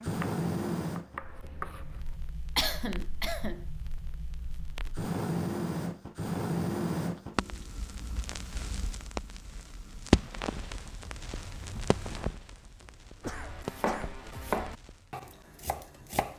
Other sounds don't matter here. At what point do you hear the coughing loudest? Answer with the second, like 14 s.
3 s.